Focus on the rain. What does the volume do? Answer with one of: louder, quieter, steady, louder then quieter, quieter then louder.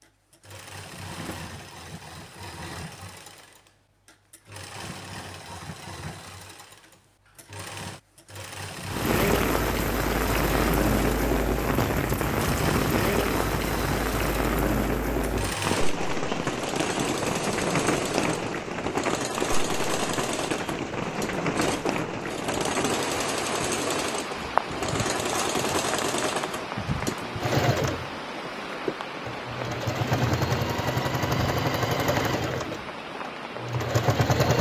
quieter.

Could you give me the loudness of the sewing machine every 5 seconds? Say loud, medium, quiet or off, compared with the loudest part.
quiet, quiet, medium, medium, medium, loud, loud.